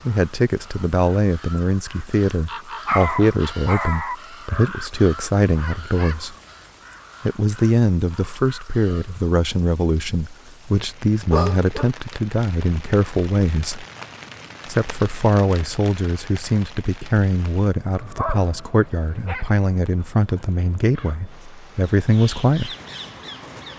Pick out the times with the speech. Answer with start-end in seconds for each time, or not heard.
0.1-6.3, 7.2-13.8, 14.7-22.8.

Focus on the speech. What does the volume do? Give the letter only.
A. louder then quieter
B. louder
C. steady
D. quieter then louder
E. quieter
C.